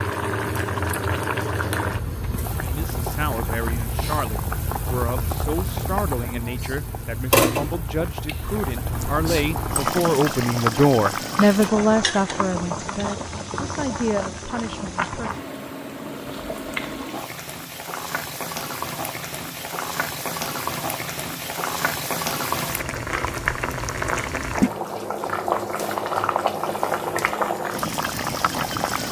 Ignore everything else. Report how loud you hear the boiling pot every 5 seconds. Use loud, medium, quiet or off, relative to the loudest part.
loud, loud, loud, medium, loud, loud.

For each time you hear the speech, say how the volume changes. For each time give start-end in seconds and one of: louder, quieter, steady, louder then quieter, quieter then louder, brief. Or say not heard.
2.6-15.3 louder then quieter.